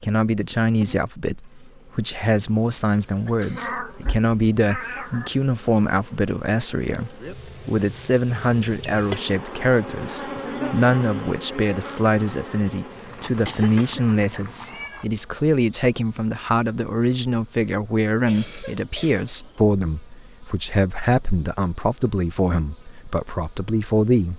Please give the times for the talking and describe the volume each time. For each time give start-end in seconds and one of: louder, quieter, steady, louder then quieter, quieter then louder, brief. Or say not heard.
0.0-24.3 steady.